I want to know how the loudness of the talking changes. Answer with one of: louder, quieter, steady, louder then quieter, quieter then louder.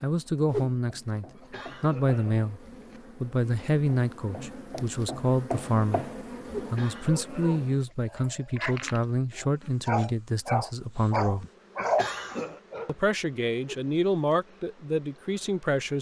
steady.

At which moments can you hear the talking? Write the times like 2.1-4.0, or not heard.
0.0-11.4, 12.8-15.9.